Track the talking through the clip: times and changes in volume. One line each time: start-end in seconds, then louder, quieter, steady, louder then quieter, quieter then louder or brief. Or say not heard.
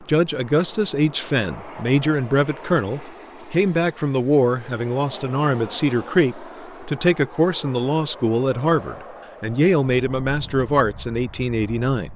0.1-12.1 steady.